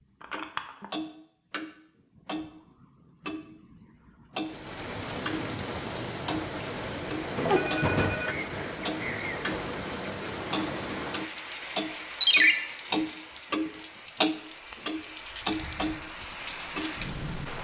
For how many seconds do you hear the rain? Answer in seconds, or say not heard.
13 s.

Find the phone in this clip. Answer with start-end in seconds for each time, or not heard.
0.2-0.8, 7.3-8.3, 12.2-12.6.